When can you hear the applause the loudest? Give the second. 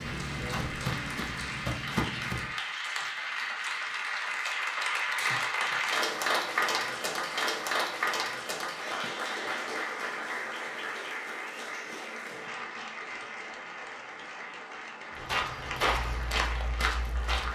6 s.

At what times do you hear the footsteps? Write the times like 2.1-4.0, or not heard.
0.0-2.5, 15.1-17.5.